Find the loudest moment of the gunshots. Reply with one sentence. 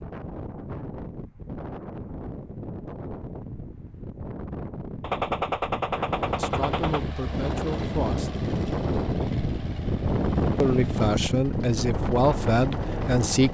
The loudest moment of the gunshots is at 5 seconds.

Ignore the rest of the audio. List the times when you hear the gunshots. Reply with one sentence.
You can hear the gunshots from 5.0 to 7.0 s.